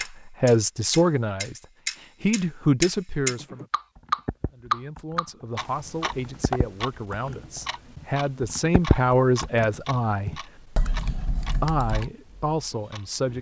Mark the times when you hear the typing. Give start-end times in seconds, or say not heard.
3.2-12.1.